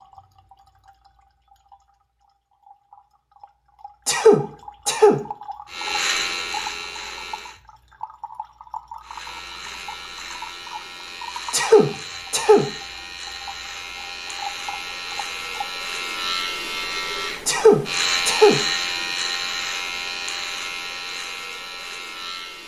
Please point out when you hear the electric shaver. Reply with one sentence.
You can hear the electric shaver from 5.7 to 7.6 s and from 9.0 to 22.6 s.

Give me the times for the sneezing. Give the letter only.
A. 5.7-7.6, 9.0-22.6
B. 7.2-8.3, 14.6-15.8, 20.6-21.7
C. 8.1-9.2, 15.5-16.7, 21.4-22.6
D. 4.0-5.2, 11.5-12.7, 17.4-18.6
D.